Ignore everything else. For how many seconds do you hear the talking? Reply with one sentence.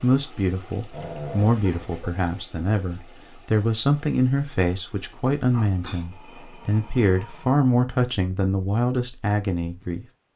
You can hear the talking for 10 seconds altogether.